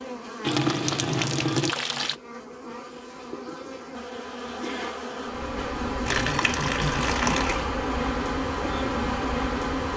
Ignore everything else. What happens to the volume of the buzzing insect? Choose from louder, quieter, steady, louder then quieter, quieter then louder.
louder.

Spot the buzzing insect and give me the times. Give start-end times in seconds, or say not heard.
0.0-9.9.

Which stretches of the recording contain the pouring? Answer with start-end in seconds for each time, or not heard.
0.4-2.1, 6.0-7.7.